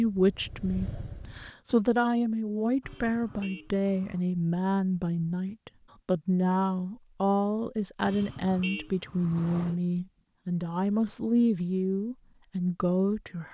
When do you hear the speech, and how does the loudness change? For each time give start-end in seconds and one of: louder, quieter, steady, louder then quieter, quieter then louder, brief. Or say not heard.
0.0-13.4 steady.